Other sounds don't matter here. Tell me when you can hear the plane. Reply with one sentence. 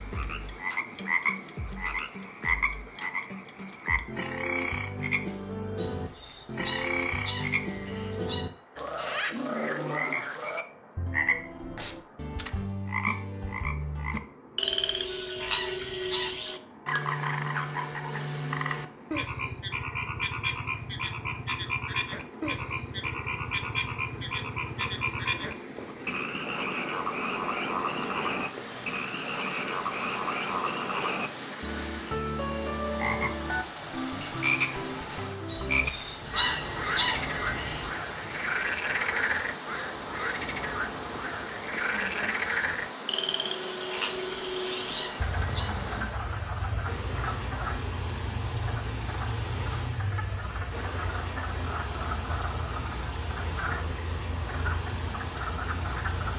You can't hear the plane here.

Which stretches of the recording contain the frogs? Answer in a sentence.
You can hear the frogs from 0.0 to 56.3 s.